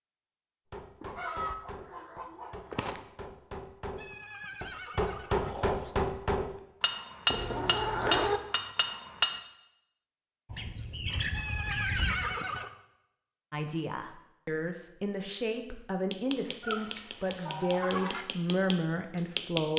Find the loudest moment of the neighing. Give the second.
12 s.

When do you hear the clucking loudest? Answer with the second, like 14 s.
8 s.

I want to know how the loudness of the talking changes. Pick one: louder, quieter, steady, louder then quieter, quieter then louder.
louder.